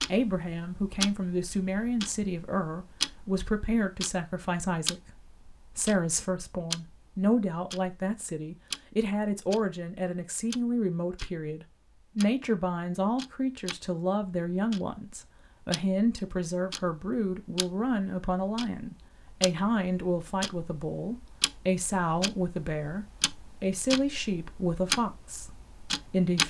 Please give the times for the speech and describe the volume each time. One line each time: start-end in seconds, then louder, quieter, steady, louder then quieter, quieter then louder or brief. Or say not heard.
0.1-26.4 steady.